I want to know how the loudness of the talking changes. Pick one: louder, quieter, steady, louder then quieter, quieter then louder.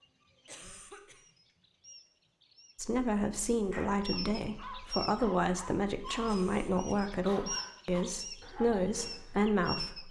steady.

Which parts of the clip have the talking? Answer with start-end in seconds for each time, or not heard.
2.8-10.0.